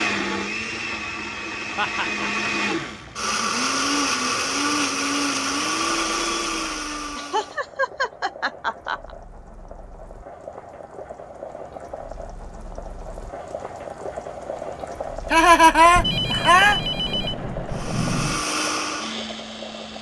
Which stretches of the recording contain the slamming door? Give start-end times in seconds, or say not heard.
not heard.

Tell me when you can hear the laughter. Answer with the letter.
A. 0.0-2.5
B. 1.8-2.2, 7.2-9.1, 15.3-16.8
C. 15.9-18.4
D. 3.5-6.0
B.